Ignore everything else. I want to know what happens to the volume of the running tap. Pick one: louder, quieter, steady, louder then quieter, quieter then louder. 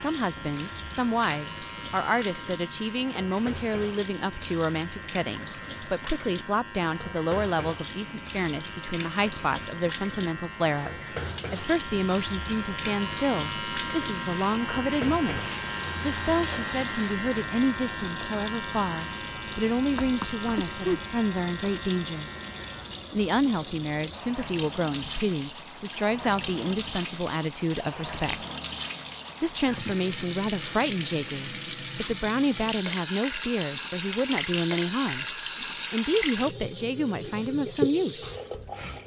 louder.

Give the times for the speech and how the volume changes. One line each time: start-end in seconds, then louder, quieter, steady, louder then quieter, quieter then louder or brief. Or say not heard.
0.0-22.3 steady
23.1-28.4 steady
29.4-38.3 steady.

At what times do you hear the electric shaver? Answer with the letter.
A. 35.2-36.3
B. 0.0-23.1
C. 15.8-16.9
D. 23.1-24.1
B.